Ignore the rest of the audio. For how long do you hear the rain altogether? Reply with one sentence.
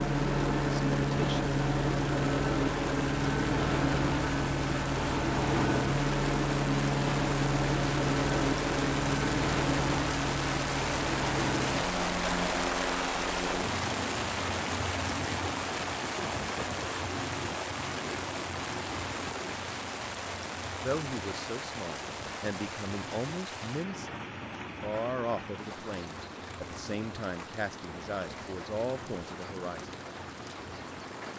The rain can be heard for 31 seconds in total.